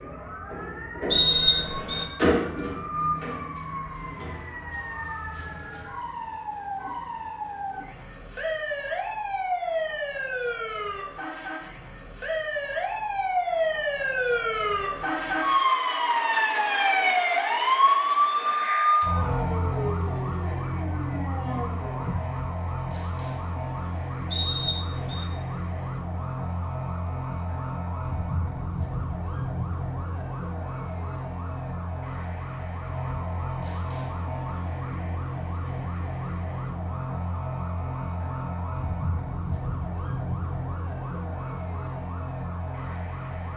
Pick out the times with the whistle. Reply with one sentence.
The whistle can be heard from 1.1 to 2.0 s and from 24.3 to 25.2 s.